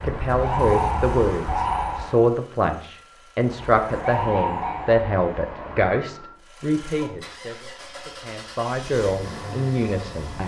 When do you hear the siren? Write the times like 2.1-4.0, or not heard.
0.0-2.3, 3.4-6.3.